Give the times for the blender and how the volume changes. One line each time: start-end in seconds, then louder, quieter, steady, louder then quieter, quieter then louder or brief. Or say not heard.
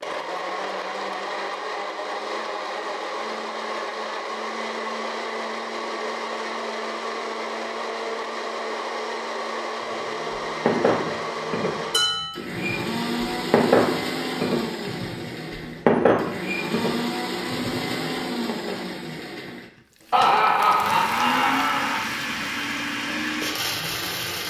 0.0-24.4 steady.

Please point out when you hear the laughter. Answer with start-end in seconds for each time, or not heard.
20.1-22.1.